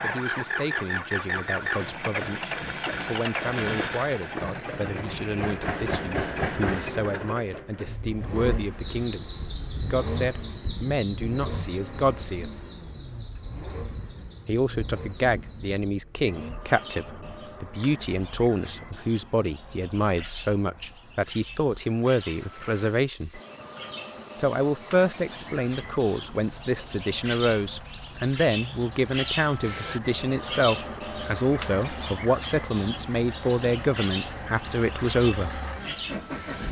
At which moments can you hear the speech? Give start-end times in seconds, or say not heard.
0.0-9.2, 9.9-12.7, 14.4-23.4, 24.4-35.6.